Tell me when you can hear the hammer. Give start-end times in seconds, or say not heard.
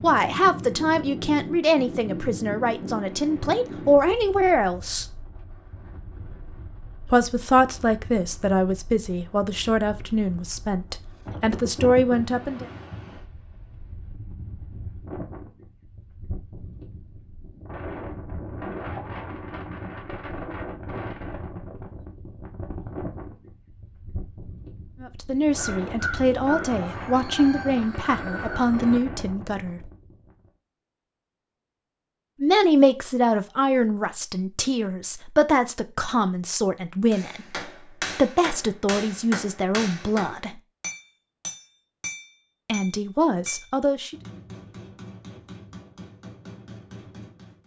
37.1-47.6.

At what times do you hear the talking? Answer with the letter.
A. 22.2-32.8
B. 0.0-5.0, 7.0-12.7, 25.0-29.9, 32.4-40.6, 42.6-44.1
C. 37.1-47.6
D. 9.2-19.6
B.